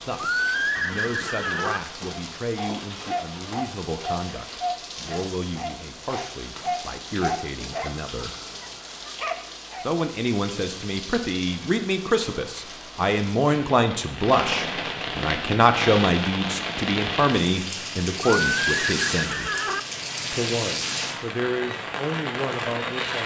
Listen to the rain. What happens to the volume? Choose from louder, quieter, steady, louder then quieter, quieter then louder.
louder.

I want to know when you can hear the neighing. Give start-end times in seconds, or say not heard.
0.1-1.8, 18.4-19.8.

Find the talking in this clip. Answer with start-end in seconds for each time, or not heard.
0.1-8.3, 9.8-19.6, 20.3-23.2.